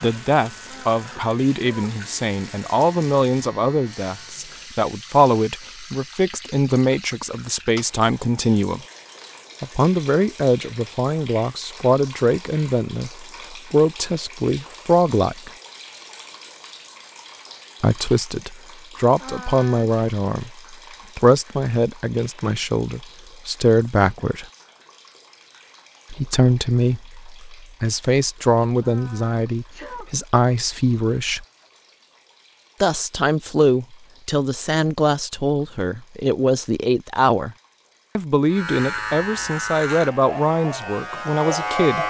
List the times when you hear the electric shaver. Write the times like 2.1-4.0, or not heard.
0.0-4.5, 38.5-42.0.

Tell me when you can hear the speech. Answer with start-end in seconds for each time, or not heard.
0.0-8.8, 9.6-15.5, 17.8-24.4, 26.1-31.4, 32.8-37.5, 38.1-42.0.